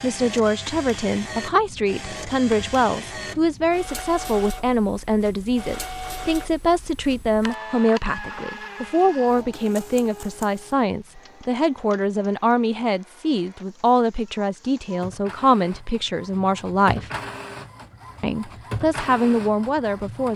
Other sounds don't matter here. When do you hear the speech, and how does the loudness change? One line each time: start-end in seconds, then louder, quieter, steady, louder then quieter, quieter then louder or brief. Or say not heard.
0.0-17.1 steady
18.2-20.3 brief.